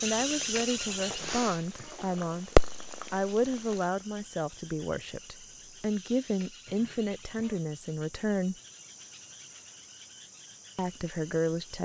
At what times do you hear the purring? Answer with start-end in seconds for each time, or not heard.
0.2-3.9.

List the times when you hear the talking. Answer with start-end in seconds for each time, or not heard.
0.0-8.6, 10.8-11.7.